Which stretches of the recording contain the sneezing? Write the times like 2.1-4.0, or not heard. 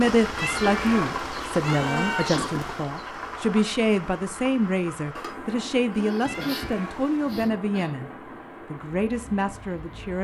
1.8-2.6, 5.9-8.0.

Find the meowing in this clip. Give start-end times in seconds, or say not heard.
0.3-2.9, 6.2-7.5.